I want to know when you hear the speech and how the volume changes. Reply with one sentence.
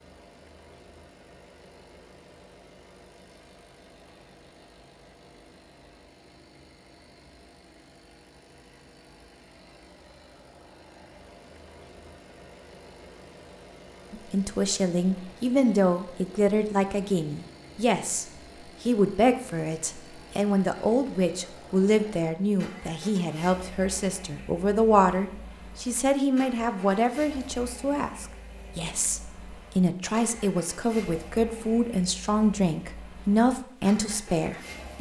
You can hear the speech from 14.1 to 34.9 s, at a steady volume.